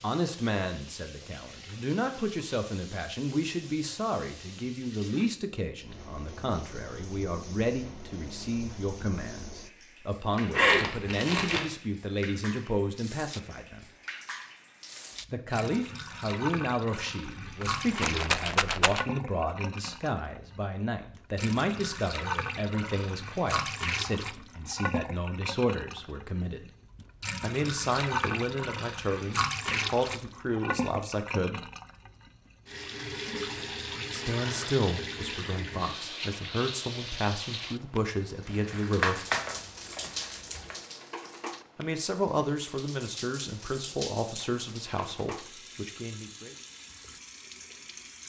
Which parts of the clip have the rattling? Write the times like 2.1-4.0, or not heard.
17.4-19.1.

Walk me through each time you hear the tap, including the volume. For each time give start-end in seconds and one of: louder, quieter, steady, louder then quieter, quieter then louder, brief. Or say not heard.
0.0-48.2 louder then quieter.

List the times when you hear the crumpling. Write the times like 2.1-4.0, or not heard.
10.5-11.7, 38.5-40.8.